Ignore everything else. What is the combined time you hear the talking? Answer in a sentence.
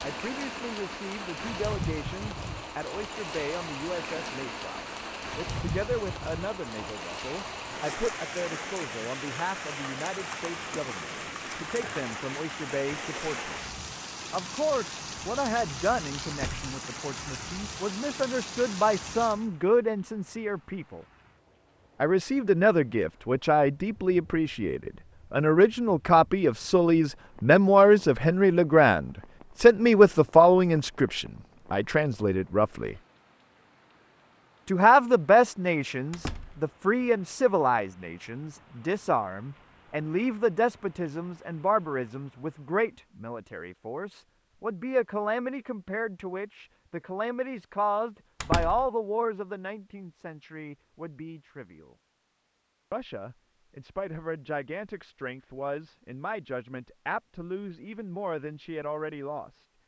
You can hear the talking for 55 seconds altogether.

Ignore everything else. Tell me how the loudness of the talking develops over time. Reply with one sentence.
The volume of the talking goes up, then down.